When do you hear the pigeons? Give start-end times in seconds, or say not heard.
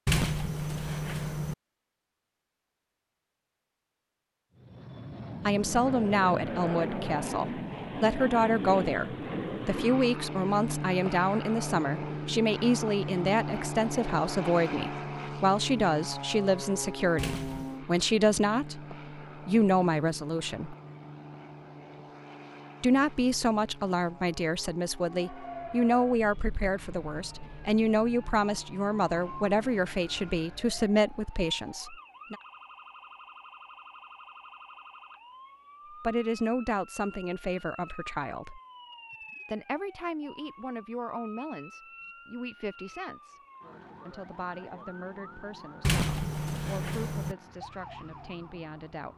not heard.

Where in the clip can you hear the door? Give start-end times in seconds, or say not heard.
0.1-1.6, 17.1-17.8, 45.8-47.4.